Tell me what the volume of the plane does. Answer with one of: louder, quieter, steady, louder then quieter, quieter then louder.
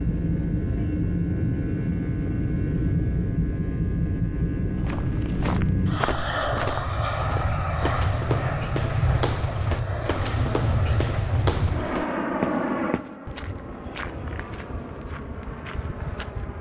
quieter.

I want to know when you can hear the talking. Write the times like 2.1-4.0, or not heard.
not heard.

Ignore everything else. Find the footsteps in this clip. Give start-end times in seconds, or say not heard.
4.8-16.5.